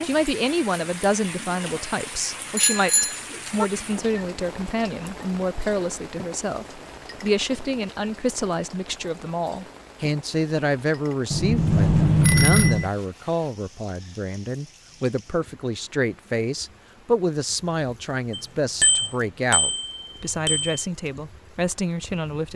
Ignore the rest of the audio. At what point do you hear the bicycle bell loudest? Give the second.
12 s.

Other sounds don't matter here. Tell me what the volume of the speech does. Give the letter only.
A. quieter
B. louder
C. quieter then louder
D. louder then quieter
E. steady
E.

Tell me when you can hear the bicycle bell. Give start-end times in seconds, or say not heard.
2.5-3.6, 11.3-12.9, 18.3-20.9.